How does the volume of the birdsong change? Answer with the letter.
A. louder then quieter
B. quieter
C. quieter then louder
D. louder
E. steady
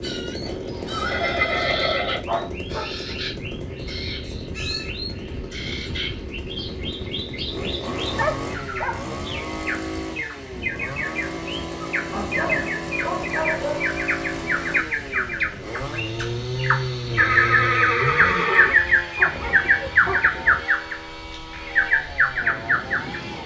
D.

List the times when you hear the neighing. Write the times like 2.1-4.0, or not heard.
0.5-2.2, 17.1-18.8.